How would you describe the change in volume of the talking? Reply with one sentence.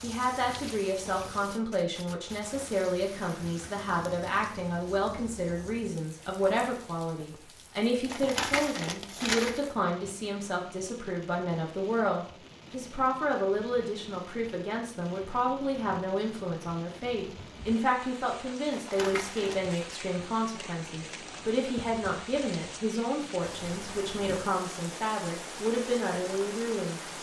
The loudness of the talking stays about the same.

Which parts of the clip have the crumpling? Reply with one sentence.
You can hear the crumpling from 8.1 to 9.7 s and from 18.7 to 19.8 s.